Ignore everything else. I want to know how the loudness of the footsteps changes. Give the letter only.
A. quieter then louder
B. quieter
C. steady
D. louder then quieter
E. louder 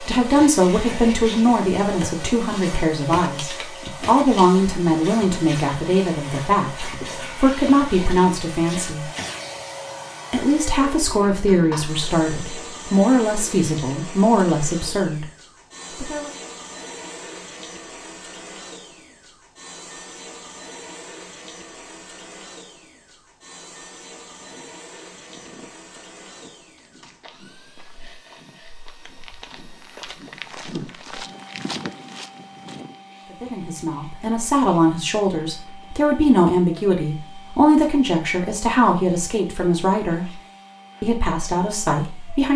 E.